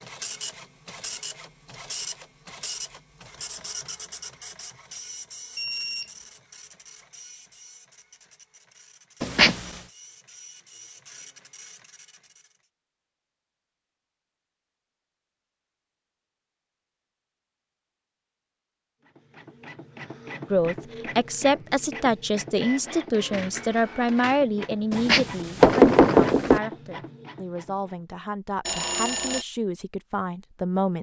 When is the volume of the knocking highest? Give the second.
26 s.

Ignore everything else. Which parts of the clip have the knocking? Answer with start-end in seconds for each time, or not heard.
9.2-9.7, 24.9-26.6.